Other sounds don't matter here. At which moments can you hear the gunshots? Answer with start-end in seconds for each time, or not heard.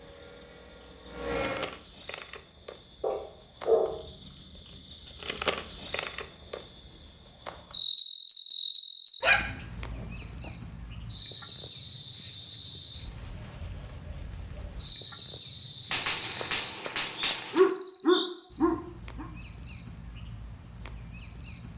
15.9-17.7.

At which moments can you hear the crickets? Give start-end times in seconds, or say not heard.
0.0-21.7.